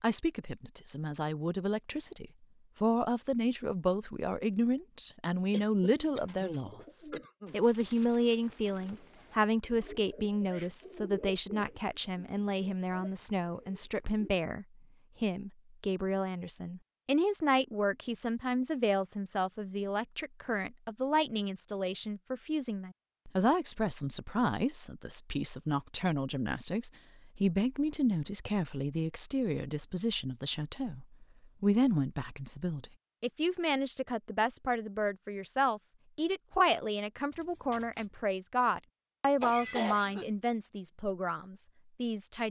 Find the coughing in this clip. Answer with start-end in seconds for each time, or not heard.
5.5-7.7, 39.4-40.2.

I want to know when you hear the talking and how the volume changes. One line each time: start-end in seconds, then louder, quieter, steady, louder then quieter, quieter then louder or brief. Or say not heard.
0.0-42.4 steady.